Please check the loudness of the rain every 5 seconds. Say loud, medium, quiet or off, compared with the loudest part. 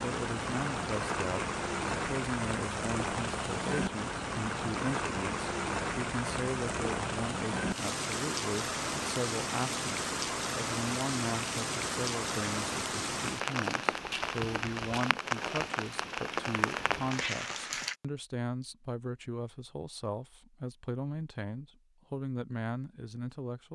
loud, loud, loud, loud, off.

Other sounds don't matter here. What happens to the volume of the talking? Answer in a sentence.
The loudness of the talking stays about the same.